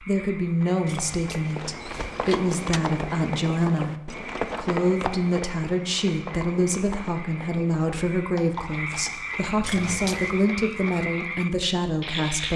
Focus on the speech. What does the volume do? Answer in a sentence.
The loudness of the speech stays about the same.